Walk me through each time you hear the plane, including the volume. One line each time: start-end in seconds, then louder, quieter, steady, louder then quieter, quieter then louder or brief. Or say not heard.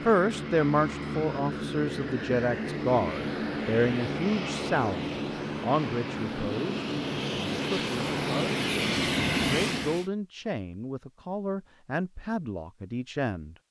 0.0-10.1 louder.